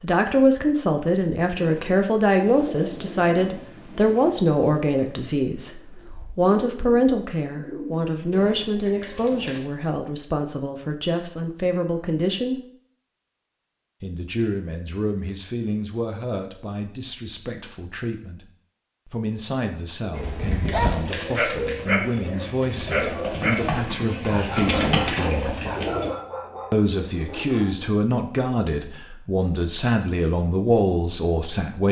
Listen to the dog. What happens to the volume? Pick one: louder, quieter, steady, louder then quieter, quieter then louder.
quieter.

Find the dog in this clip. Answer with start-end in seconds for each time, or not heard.
20.1-27.9.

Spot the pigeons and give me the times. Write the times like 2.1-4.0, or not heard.
1.6-9.6, 20.1-26.1.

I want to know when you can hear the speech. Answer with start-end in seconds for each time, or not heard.
0.0-12.6, 14.0-18.4, 19.1-25.6, 26.7-31.8.